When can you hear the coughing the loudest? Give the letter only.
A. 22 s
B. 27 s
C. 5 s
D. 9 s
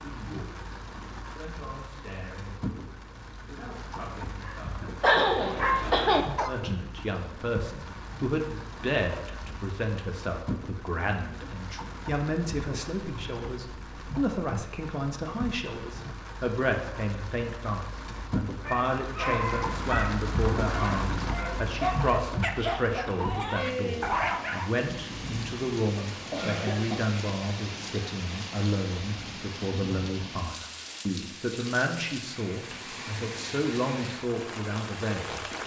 C.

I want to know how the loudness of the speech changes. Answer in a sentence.
The loudness of the speech goes up.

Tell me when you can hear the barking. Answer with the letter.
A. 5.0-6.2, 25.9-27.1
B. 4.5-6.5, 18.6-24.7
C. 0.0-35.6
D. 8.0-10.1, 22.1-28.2
B.